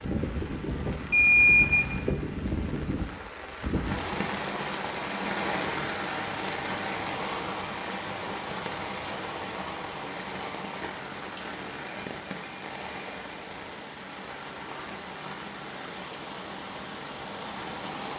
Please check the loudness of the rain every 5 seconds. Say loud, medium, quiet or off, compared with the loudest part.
loud, loud, medium, medium.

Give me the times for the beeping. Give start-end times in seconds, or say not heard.
1.1-1.9, 11.3-13.3.